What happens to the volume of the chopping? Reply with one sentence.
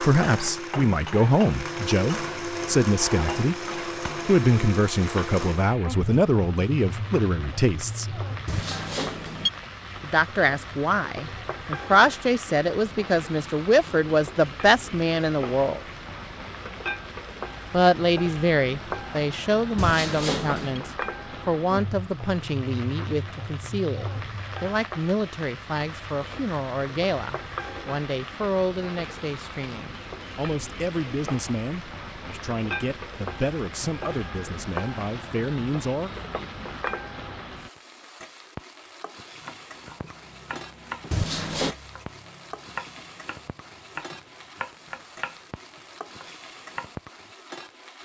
The loudness of the chopping goes down, then up.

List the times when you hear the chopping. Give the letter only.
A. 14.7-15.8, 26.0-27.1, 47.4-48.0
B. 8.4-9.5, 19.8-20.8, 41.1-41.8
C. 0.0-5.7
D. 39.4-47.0
D.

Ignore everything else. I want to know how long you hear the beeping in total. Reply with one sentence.
The beeping can be heard for 3 seconds in total.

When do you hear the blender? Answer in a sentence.
The blender can be heard from 0.0 to 5.7 s.